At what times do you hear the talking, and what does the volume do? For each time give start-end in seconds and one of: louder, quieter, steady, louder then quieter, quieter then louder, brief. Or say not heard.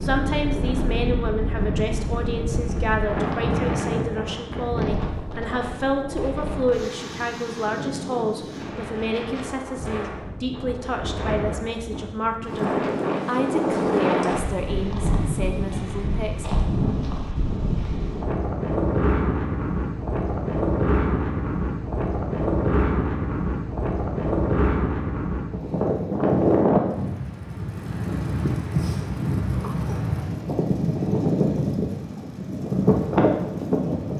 0.0-16.4 steady.